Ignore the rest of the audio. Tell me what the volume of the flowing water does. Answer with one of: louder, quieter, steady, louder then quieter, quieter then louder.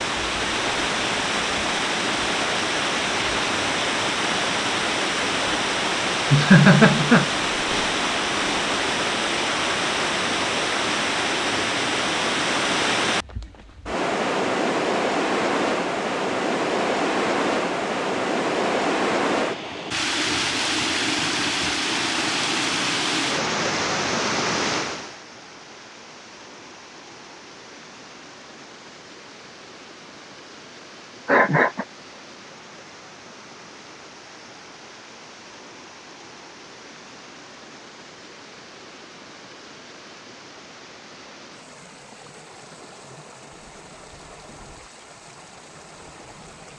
quieter.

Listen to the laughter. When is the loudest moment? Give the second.
7 s.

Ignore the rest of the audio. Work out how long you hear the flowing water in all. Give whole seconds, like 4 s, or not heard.
47 s.